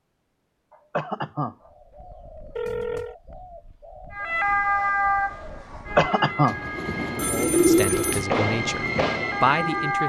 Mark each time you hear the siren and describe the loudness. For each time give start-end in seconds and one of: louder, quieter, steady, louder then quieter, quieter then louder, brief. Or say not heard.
4.1-10.0 quieter then louder.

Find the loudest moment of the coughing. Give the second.
6 s.